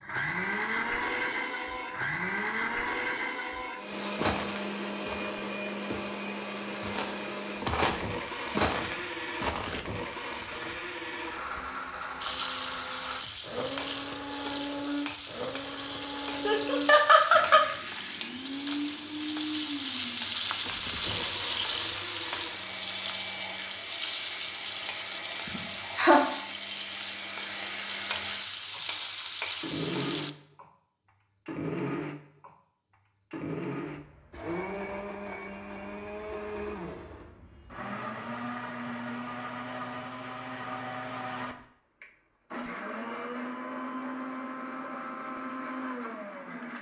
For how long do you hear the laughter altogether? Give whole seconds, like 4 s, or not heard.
2 s.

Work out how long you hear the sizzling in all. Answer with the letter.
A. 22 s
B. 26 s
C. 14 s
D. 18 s
D.